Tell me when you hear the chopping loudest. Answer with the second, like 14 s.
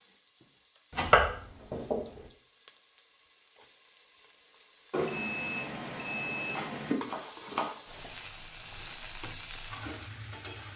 1 s.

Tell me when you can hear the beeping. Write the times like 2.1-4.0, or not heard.
4.9-7.0.